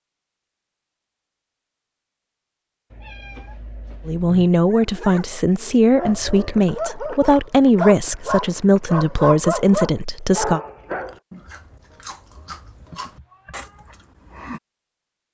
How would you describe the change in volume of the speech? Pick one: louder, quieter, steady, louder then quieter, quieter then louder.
steady.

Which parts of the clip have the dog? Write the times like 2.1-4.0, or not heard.
4.7-11.2.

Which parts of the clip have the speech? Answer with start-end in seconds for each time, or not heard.
4.0-10.6.